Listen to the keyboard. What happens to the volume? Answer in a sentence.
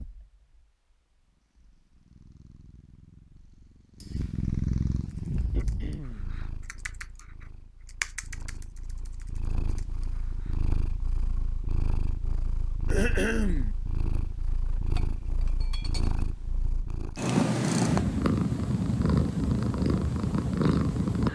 The volume of the keyboard goes up, then down.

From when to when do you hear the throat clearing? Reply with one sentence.
You can hear the throat clearing from 5.5 to 6.4 s and from 12.8 to 13.8 s.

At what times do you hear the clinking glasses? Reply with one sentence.
The clinking glasses can be heard from 14.9 to 16.2 s.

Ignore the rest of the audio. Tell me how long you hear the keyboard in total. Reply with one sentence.
You can hear the keyboard for 6 seconds altogether.